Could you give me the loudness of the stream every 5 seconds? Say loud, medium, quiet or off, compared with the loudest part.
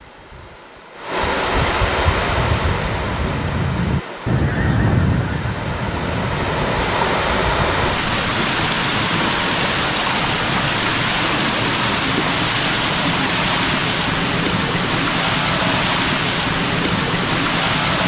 medium, loud, loud, loud.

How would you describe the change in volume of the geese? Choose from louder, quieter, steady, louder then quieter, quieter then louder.
louder then quieter.